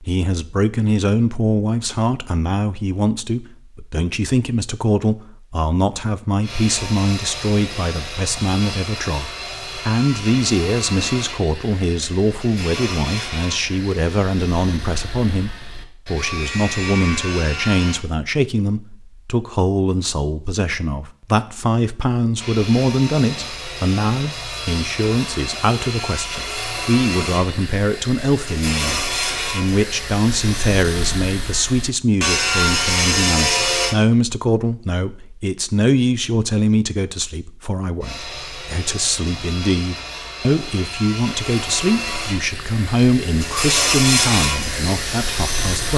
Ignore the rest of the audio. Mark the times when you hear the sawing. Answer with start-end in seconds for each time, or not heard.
6.4-18.0, 22.4-34.0, 38.0-45.9.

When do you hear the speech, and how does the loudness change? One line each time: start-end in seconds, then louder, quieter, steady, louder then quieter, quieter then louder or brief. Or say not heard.
0.0-45.9 steady.